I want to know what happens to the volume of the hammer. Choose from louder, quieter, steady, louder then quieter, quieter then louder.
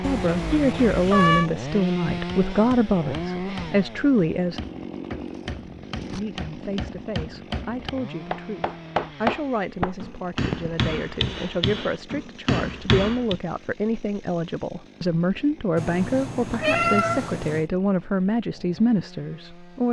louder.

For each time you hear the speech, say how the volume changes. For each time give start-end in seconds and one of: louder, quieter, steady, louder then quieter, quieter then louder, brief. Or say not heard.
0.0-4.6 steady
6.1-19.8 louder.